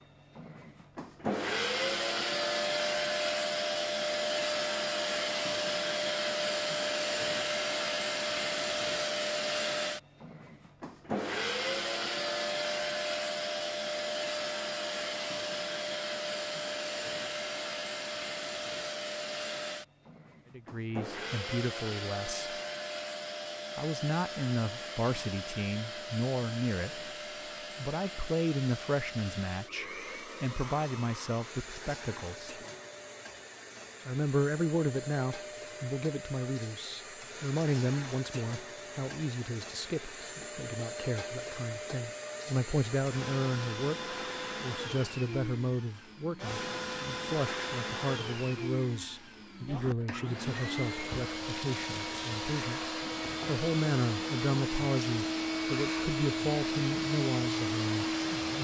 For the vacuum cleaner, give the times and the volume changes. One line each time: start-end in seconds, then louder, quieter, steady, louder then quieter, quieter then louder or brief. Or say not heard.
0.0-58.5 quieter then louder.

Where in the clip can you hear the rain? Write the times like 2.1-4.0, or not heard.
not heard.